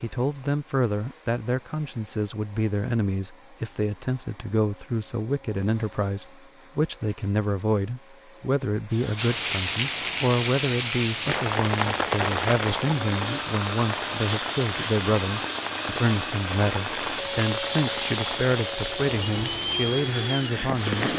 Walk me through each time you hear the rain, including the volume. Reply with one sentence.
The rain can be heard from 9.2 to 21.1 s, getting quieter.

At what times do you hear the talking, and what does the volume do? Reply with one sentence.
You can hear the talking from 0.0 to 21.1 s, at a steady volume.